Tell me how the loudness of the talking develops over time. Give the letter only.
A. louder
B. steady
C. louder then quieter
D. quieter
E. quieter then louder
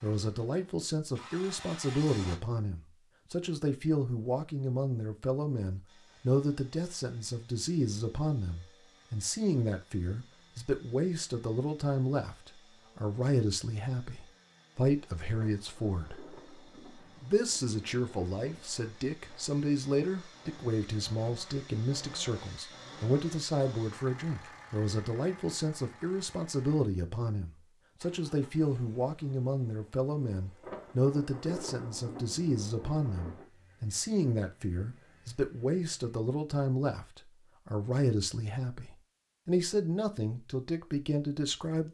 B.